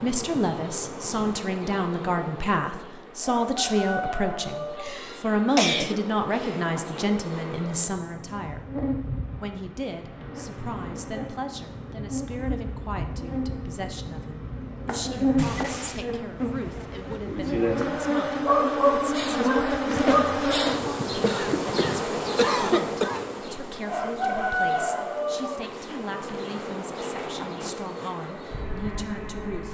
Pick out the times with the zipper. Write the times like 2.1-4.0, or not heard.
not heard.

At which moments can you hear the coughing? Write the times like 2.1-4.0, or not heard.
4.8-6.5, 15.3-16.1, 21.2-23.2.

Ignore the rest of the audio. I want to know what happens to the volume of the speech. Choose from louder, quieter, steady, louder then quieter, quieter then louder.
quieter.